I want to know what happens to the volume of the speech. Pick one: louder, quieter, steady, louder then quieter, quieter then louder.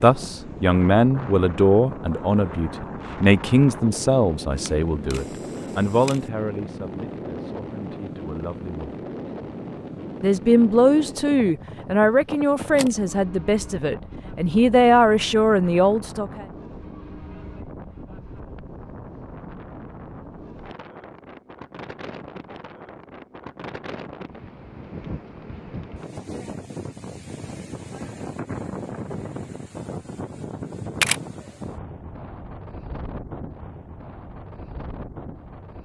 quieter then louder.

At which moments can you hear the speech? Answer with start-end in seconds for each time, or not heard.
0.0-8.9, 10.2-16.4.